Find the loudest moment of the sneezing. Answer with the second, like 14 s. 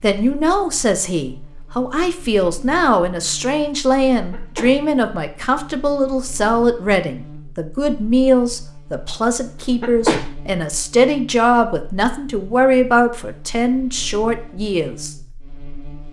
10 s.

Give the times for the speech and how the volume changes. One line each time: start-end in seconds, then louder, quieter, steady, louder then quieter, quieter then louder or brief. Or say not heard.
0.0-15.2 steady.